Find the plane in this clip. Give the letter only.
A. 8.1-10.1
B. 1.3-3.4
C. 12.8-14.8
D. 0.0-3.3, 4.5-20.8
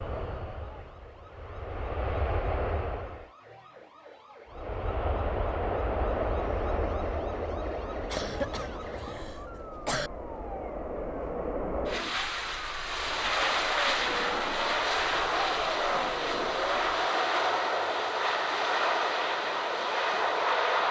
D.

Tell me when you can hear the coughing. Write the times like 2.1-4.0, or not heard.
8.1-10.1.